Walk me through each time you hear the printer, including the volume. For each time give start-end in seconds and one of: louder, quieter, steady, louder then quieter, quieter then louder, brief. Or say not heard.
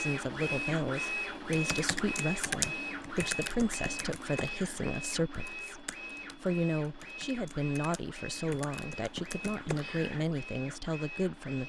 0.0-11.6 quieter.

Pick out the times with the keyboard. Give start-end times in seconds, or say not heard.
1.2-10.2.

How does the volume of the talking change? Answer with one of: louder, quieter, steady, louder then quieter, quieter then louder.
steady.